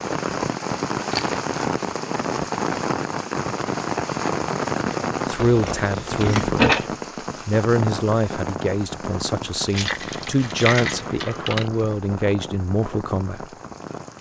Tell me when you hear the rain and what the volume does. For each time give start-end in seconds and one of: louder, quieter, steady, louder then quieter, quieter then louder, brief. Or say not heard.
0.0-14.1 quieter.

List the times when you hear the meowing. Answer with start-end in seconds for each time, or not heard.
not heard.